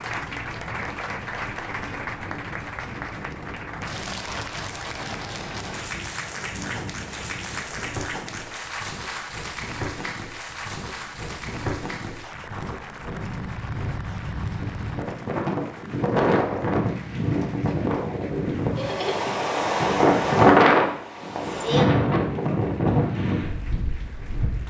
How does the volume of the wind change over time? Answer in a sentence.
The volume of the wind goes up.